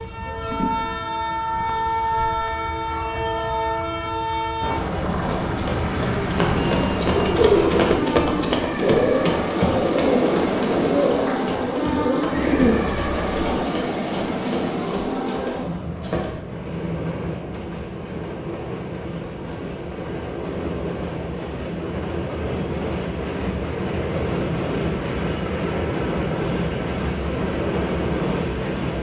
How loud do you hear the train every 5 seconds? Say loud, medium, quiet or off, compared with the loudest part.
loud, loud, loud, medium, loud, loud.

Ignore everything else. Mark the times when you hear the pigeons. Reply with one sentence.
You can hear the pigeons from 6.5 to 13.6 s.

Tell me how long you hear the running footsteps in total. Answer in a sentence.
You can hear the running footsteps for 11 seconds altogether.